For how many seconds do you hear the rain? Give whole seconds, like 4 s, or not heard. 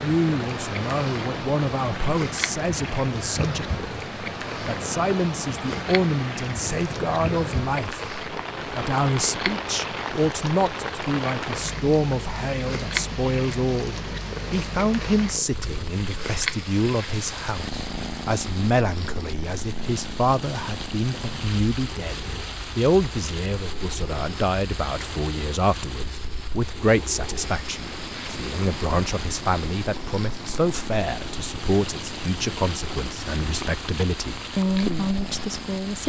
36 s.